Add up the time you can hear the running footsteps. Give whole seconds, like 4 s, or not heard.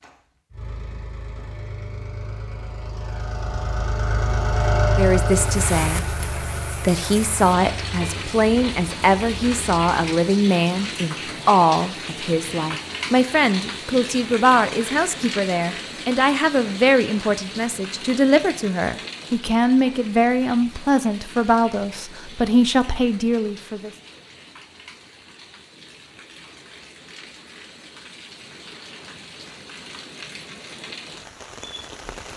not heard.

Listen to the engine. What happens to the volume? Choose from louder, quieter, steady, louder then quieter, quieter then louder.
louder then quieter.